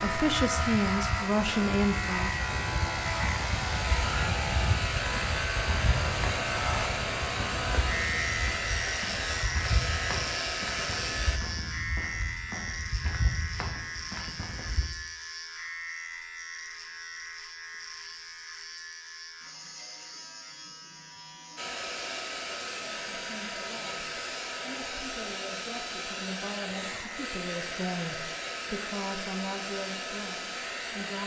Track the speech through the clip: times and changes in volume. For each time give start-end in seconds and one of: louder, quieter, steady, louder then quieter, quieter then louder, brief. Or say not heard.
0.0-2.4 brief
22.7-31.2 louder.